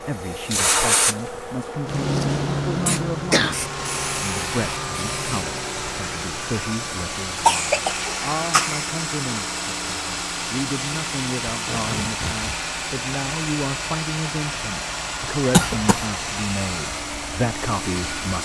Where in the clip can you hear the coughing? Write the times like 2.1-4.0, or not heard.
2.9-3.6, 7.5-8.8, 15.5-16.1.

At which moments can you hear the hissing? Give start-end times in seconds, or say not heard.
0.0-5.5.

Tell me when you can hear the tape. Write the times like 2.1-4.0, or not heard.
11.4-12.6.